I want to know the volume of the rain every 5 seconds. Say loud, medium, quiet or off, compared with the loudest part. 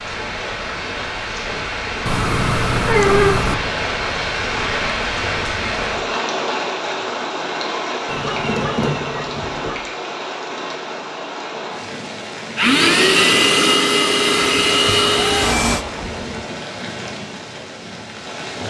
loud, loud, medium, medium.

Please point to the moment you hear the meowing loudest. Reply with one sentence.
The volume of the meowing peaks at 3 seconds.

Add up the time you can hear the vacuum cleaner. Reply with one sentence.
The vacuum cleaner can be heard for 3 seconds in total.